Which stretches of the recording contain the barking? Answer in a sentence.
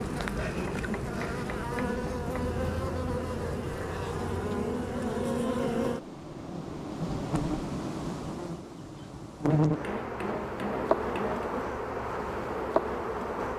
You can't hear the barking here.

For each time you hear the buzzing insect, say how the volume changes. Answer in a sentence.
The buzzing insect can be heard from 0.0 to 13.5 s, at a steady volume.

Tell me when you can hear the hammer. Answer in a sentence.
You can hear the hammer from 0.7 to 2.5 s and from 9.5 to 11.5 s.